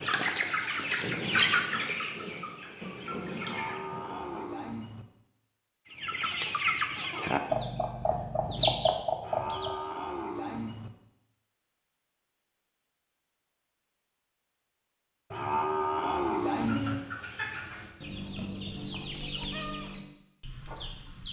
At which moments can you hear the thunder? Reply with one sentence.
The thunder can be heard from 0.9 to 4.5 s.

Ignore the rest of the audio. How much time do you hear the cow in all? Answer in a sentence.
The cow can be heard for 5 seconds in total.